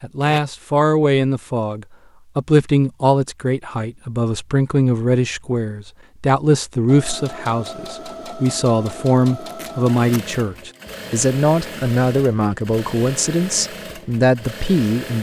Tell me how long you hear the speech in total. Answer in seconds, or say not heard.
15 s.